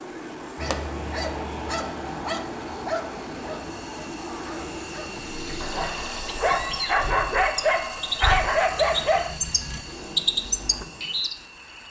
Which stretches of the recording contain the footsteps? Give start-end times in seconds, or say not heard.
not heard.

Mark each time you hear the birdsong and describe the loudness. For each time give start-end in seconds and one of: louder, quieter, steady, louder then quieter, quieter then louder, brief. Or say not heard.
5.3-11.8 louder.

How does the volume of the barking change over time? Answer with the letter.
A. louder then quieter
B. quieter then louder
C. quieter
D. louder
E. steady
D.